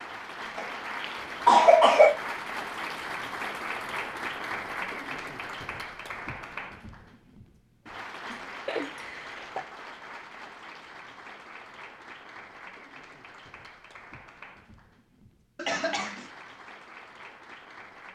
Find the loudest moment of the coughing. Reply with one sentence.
The volume of the coughing peaks at 2 seconds.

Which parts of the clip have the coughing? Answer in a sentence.
The coughing can be heard from 0.6 to 2.2 s, from 8.3 to 9.7 s and from 15.6 to 16.3 s.